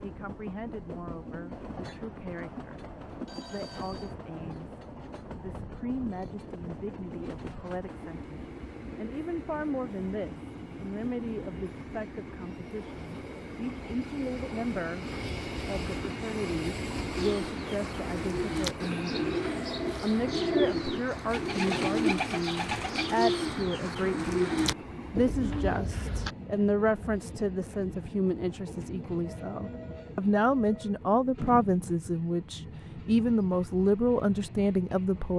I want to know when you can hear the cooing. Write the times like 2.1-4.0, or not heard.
17.1-26.4.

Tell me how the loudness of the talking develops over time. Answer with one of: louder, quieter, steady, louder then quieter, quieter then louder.
louder.